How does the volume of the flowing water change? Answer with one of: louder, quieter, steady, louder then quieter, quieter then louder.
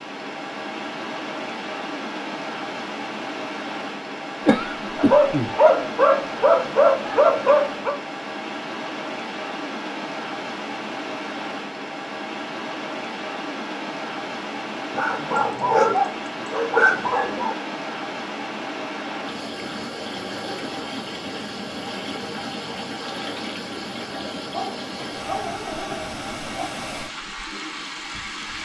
steady.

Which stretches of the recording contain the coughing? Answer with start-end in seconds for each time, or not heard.
4.5-5.5.